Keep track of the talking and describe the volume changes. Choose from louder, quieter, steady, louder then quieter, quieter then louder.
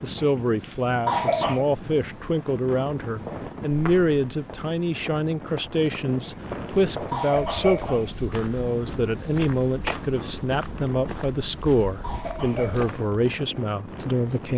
steady.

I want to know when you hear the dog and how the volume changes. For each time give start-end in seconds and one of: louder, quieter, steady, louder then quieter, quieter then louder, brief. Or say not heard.
not heard.